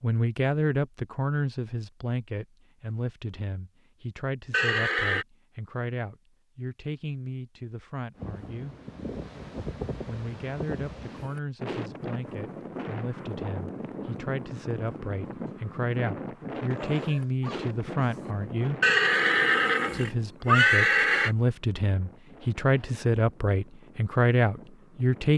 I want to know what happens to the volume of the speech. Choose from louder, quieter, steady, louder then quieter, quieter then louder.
quieter then louder.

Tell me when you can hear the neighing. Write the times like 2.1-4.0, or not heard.
4.5-5.2, 18.8-21.4.